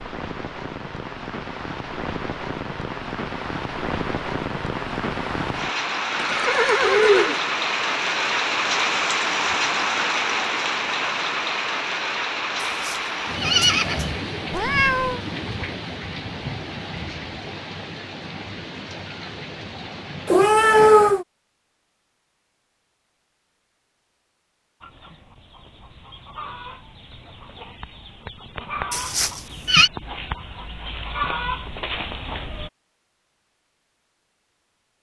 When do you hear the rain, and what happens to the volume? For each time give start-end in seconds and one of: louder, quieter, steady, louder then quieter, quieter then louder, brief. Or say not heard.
0.0-20.6 louder then quieter.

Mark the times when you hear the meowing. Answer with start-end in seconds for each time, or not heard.
14.5-15.2, 20.2-21.2.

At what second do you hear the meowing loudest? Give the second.
21 s.